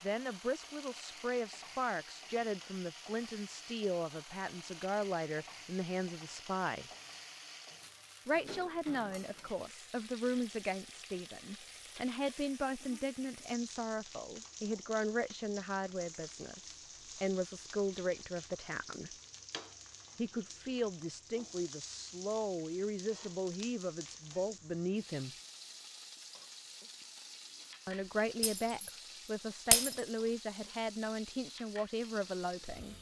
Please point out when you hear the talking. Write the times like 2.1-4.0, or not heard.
0.0-6.9, 8.2-19.1, 20.1-25.4, 27.9-32.9.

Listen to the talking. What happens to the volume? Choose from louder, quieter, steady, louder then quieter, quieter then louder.
steady.